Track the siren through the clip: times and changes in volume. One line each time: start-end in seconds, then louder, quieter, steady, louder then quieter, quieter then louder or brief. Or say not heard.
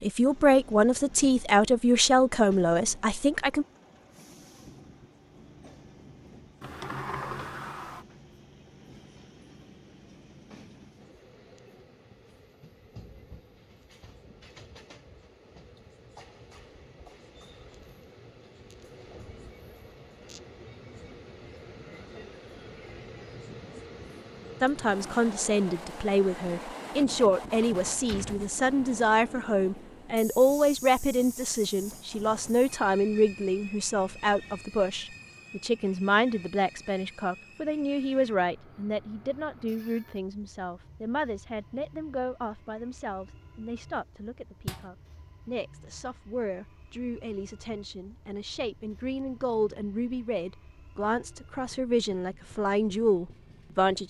not heard.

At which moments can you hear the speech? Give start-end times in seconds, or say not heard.
0.0-3.6, 24.6-54.0.